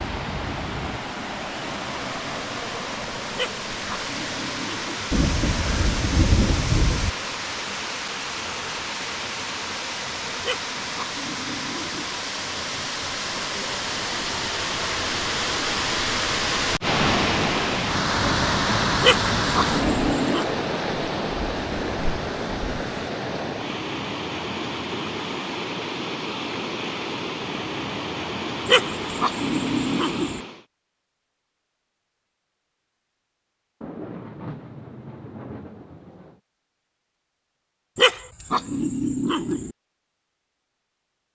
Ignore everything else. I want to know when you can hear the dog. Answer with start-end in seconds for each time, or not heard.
3.4-5.1, 10.4-12.2, 19.0-20.6, 28.6-30.4, 38.0-39.7.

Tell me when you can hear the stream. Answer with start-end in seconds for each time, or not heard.
0.0-30.6.